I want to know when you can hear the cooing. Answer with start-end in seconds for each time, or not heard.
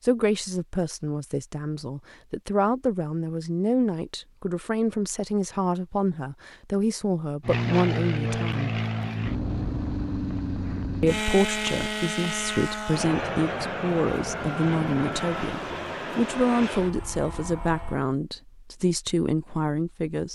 not heard.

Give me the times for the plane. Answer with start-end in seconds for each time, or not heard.
7.4-18.0.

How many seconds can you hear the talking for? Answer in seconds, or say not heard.
18 s.